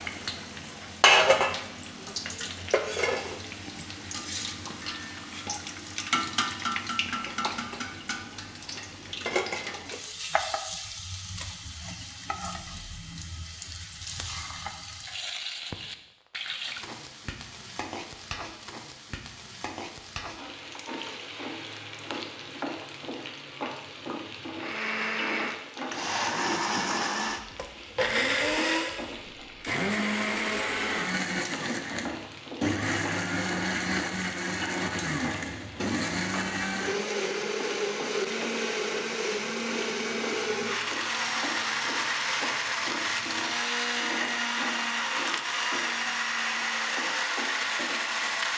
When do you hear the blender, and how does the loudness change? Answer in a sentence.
You can hear the blender from 24.6 to 48.5 s, at a steady volume.